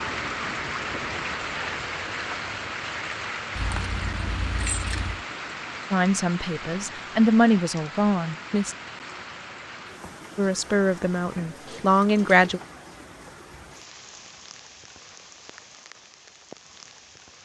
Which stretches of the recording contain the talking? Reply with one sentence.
The talking can be heard from 5.9 to 8.8 s and from 10.3 to 12.6 s.